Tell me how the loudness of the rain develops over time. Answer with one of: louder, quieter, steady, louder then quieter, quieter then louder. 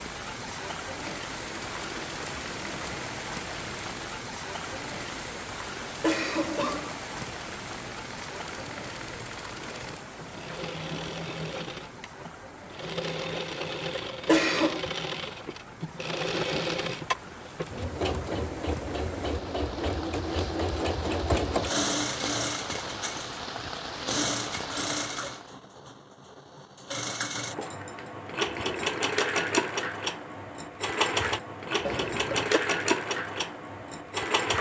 quieter then louder.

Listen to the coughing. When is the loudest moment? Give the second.
14 s.